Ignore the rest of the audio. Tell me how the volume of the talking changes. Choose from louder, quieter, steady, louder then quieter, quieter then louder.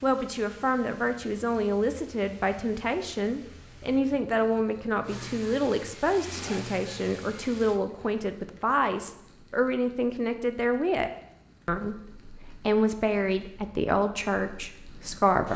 steady.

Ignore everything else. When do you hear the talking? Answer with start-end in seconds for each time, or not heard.
0.0-15.5.